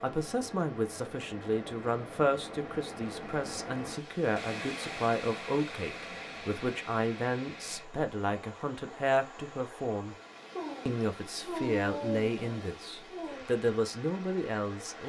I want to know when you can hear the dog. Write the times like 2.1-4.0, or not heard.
10.6-13.5.